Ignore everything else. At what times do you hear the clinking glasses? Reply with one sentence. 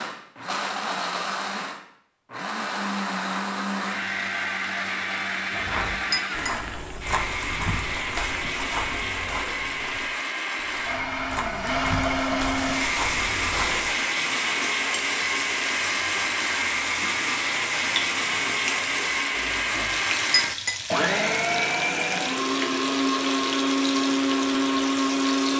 The clinking glasses can be heard from 5.5 to 6.5 s and from 19.8 to 20.8 s.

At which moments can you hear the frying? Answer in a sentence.
You can hear the frying from 12.6 to 25.5 s.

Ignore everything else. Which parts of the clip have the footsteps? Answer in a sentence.
The footsteps can be heard from 5.5 to 14.0 s.